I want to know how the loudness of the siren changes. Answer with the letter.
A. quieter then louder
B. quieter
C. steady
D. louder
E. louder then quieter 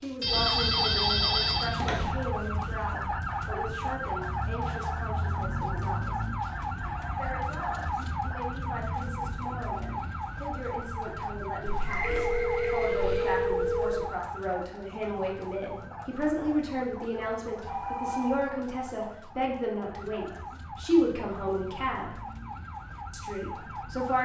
B.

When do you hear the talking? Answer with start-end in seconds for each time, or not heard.
0.0-6.2, 7.2-22.2, 23.1-24.2.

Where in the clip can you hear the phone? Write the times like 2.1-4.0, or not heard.
0.2-2.0, 11.7-14.1, 17.6-18.5.